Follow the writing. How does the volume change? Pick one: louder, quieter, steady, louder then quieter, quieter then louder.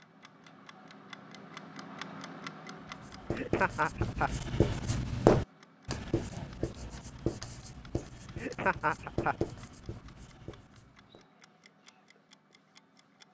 louder then quieter.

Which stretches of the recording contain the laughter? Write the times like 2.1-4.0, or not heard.
3.3-4.3, 8.3-9.3.